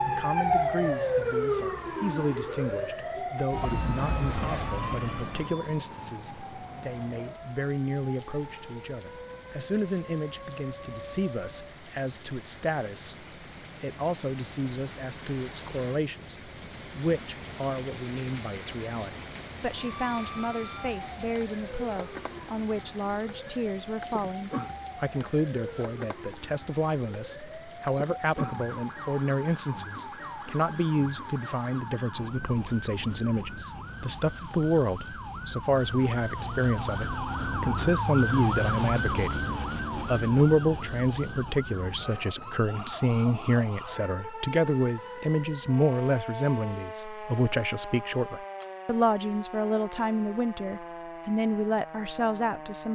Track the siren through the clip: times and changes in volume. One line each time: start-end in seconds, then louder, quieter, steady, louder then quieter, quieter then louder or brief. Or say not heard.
0.0-11.8 quieter
19.7-52.9 louder then quieter.